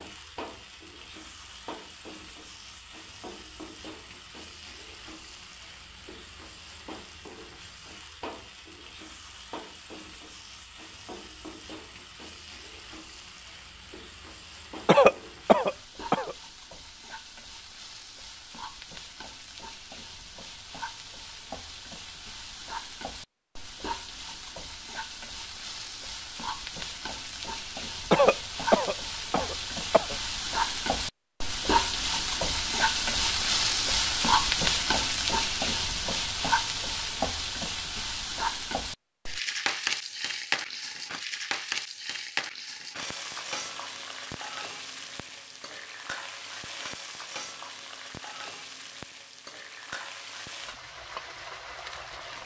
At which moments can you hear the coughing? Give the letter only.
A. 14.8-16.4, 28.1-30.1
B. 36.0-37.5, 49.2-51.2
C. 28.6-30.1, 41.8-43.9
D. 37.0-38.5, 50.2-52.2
A.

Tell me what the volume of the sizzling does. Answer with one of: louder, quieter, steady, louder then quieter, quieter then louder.
louder then quieter.